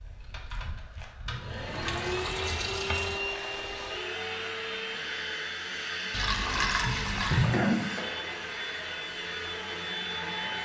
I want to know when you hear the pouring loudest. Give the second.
7 s.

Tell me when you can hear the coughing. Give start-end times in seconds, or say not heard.
6.6-8.0.